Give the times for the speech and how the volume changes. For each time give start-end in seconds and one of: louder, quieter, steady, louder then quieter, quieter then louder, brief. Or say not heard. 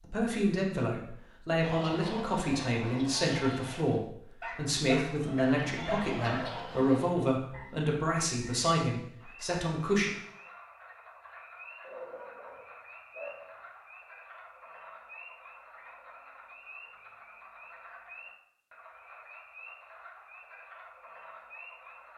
0.0-10.1 steady.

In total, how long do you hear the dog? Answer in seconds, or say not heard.
4 s.